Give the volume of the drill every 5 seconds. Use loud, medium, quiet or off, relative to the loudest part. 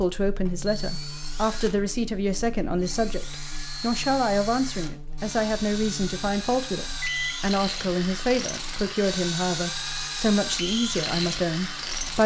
medium, loud, loud.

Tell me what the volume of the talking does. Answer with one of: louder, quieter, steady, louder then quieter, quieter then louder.
steady.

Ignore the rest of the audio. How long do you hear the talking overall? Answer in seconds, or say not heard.
12 s.